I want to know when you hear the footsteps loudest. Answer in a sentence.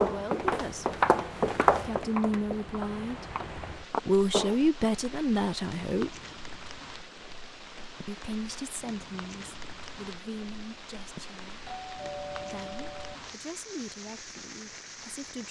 The loudest moment of the footsteps is at 2 seconds.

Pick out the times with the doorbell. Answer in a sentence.
The doorbell can be heard from 11.7 to 13.2 s.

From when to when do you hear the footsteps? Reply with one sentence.
The footsteps can be heard from 0.0 to 4.5 s.